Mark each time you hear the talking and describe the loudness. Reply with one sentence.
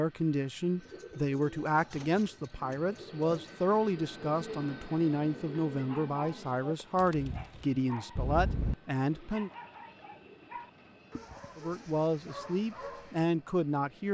The talking can be heard from 0.0 to 9.5 s, at a steady volume; and briefly from 11.6 to 14.1 s.